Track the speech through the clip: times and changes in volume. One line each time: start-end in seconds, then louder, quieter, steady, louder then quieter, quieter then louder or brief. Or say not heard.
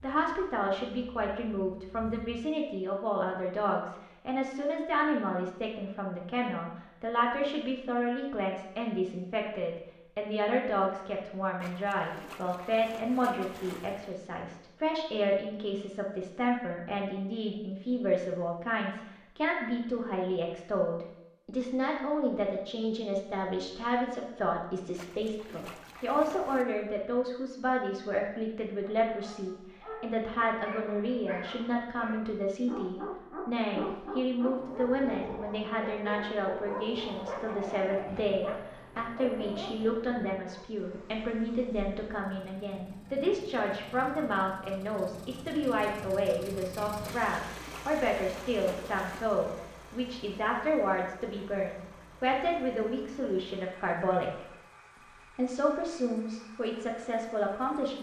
0.0-54.5 steady
55.4-57.9 brief.